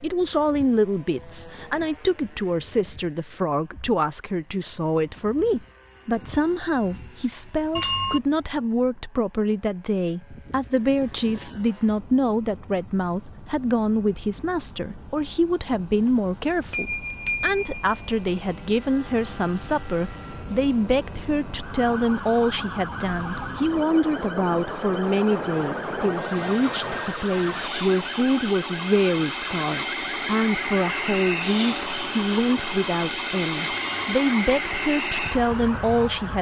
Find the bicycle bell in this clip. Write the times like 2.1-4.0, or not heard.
7.8-8.2, 16.7-17.9, 33.7-34.1.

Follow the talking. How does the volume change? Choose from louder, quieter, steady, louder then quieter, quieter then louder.
steady.